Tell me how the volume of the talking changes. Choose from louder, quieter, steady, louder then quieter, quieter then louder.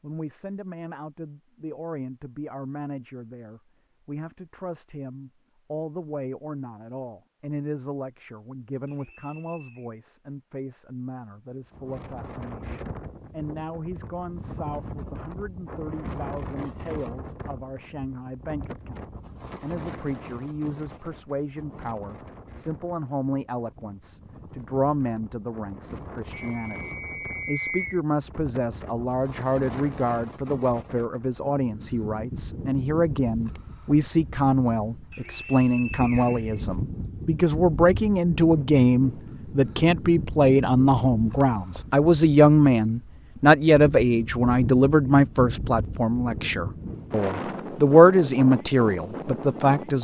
louder.